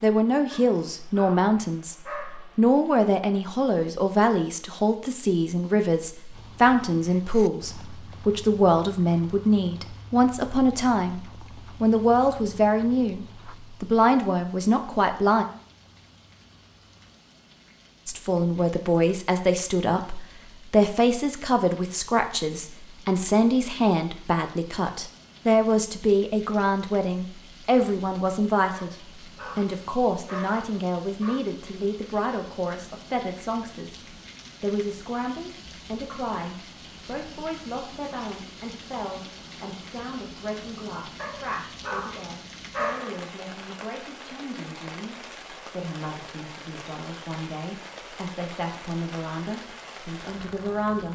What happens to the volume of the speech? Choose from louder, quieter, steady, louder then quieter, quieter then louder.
quieter.